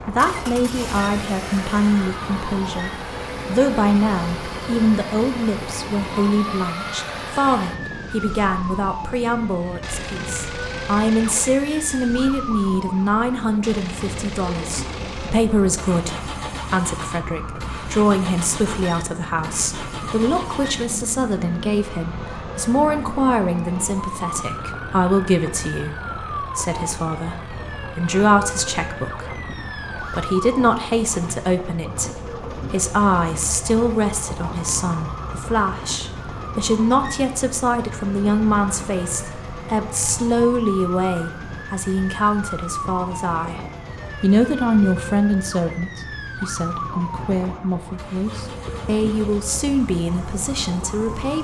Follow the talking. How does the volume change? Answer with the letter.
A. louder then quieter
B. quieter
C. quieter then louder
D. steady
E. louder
D.